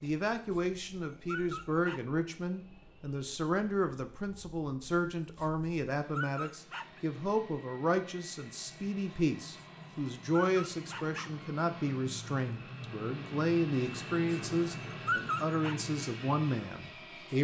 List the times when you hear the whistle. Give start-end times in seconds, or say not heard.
not heard.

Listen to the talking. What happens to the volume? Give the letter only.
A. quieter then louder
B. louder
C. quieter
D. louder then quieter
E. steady
E.